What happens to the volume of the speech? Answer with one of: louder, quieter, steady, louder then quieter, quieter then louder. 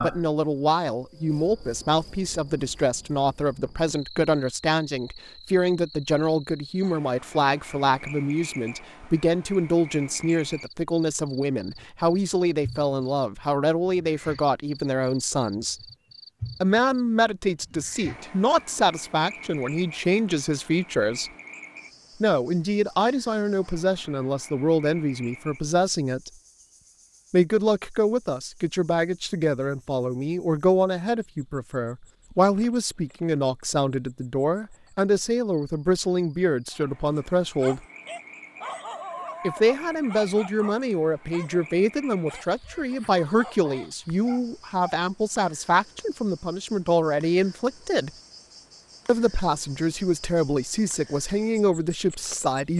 steady.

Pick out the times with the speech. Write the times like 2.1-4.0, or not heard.
0.0-15.8, 16.6-21.3, 22.2-26.3, 27.3-37.8, 39.4-48.1, 49.0-52.7.